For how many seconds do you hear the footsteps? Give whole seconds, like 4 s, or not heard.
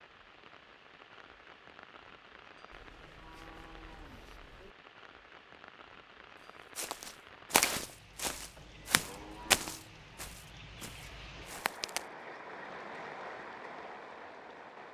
5 s.